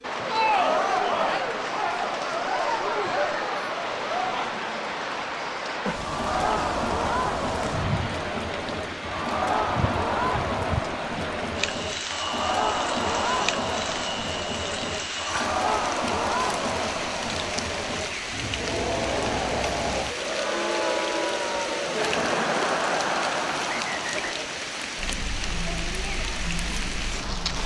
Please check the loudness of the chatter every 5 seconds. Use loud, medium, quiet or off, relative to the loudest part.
loud, loud, loud, loud, loud, medium.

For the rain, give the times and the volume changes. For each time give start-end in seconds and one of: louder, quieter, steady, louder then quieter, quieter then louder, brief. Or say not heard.
0.0-27.6 steady.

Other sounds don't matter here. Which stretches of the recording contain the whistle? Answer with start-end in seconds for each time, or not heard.
23.6-24.4.